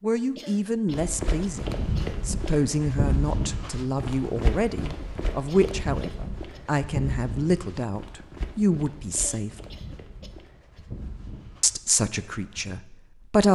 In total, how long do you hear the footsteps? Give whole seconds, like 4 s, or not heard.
12 s.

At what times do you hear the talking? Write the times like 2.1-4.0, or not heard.
0.0-9.5, 11.6-13.4.